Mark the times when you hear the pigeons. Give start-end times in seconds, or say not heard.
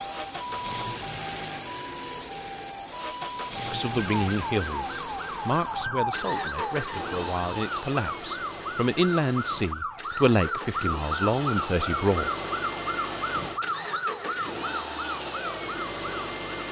not heard.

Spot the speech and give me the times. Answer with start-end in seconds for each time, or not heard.
3.7-12.3.